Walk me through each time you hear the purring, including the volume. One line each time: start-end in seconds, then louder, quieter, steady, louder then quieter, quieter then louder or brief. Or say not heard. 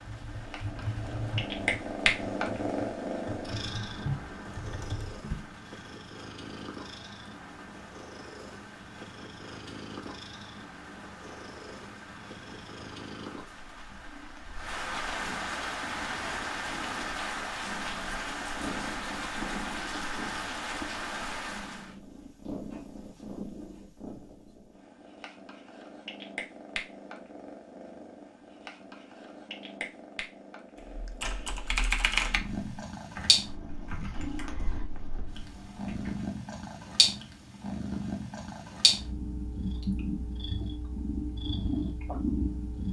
0.0-42.8 quieter then louder.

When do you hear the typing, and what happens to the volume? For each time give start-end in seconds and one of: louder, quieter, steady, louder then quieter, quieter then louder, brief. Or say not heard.
0.0-5.5 quieter then louder
30.9-36.3 quieter.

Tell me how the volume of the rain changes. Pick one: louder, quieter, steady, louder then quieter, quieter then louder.
louder.